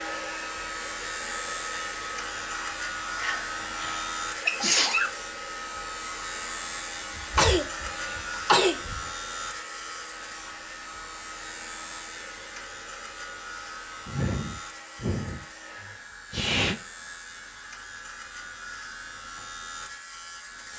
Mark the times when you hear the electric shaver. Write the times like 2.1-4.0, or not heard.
0.0-20.7.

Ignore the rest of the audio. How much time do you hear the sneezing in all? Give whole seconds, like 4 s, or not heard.
7 s.